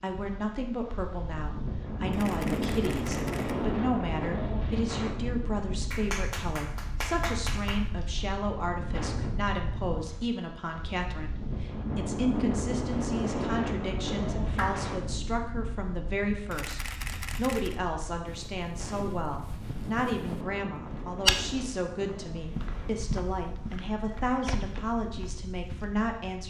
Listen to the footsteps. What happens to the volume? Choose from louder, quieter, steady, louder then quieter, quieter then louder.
louder then quieter.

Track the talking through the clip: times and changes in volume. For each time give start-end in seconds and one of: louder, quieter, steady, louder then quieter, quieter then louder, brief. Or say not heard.
0.0-26.4 steady.